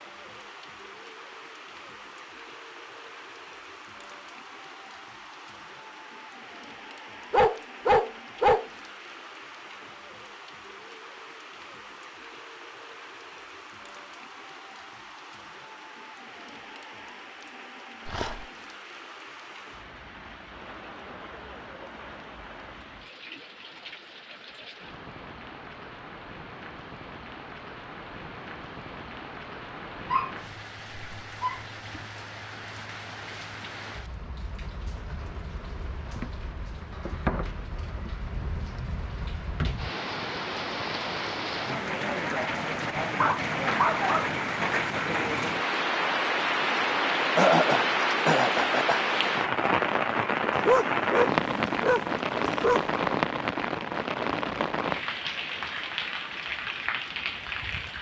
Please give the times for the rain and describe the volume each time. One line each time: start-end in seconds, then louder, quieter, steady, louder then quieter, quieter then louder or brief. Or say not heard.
0.0-57.9 louder.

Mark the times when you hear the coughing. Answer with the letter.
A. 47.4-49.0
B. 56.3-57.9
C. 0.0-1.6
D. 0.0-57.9
A.